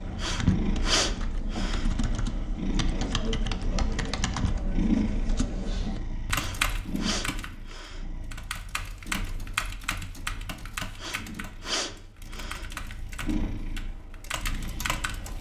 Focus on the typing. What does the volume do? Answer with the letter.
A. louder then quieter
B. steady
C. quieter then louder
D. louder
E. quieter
E.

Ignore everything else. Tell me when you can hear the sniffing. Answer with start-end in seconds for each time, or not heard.
0.2-1.9, 6.3-8.0, 10.9-12.7.